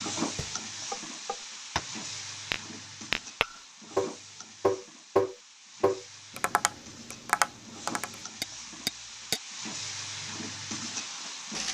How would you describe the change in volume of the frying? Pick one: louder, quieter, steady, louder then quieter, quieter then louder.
quieter then louder.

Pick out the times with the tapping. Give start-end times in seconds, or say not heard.
0.3-9.4.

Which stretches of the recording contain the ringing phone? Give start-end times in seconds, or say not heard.
not heard.